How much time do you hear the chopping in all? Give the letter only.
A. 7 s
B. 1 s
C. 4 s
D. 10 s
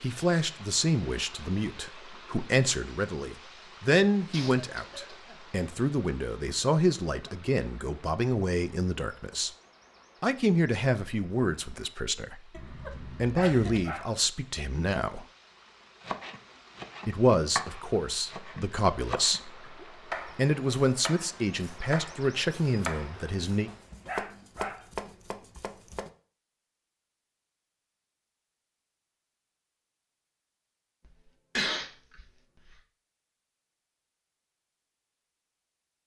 D.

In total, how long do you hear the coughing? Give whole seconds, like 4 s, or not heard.
4 s.